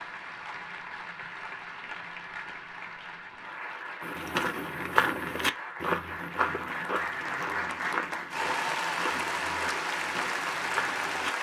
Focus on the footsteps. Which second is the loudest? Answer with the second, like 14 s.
5 s.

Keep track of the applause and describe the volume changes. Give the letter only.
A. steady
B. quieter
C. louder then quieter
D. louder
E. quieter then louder
D.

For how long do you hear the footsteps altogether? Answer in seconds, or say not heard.
7 s.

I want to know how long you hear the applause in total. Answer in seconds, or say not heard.
11 s.